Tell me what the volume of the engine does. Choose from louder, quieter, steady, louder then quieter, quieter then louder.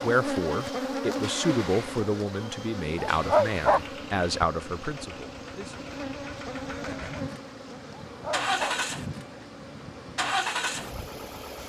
louder.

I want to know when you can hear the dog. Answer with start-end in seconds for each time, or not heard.
3.0-3.8, 8.1-8.8.